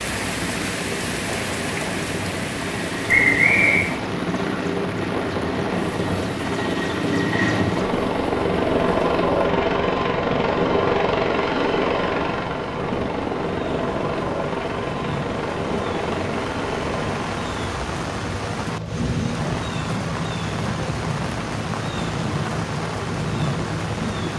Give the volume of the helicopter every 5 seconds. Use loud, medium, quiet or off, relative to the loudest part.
medium, loud, loud, medium, medium.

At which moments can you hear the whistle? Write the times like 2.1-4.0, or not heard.
3.0-3.9.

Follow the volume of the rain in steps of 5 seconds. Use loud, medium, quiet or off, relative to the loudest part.
loud, medium, medium, loud, loud.